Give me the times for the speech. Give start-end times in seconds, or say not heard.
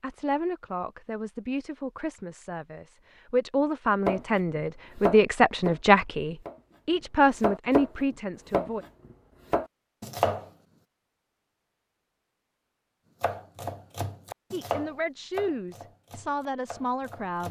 0.0-8.8, 14.5-17.4.